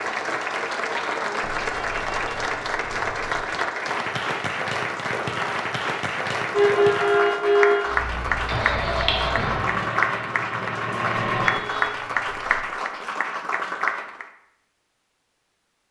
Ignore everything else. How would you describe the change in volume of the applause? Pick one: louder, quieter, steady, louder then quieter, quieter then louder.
steady.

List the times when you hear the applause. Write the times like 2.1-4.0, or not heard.
0.0-14.2.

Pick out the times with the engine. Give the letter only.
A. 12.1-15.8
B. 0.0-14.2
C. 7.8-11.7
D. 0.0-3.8
C.